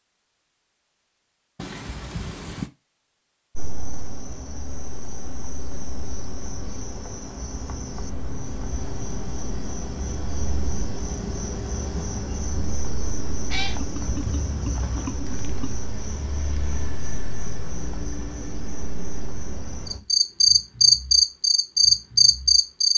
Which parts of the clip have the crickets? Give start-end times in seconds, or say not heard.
3.5-22.9.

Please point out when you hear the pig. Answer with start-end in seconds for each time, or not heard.
13.8-15.8.